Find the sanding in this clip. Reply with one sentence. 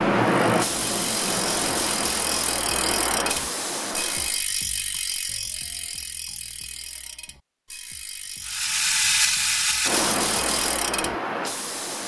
The sanding can't be heard in this clip.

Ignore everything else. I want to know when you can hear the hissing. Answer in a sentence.
You can hear the hissing from 0.0 to 4.4 s and from 8.4 to 12.0 s.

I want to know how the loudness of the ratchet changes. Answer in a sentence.
The loudness of the ratchet goes down, then up.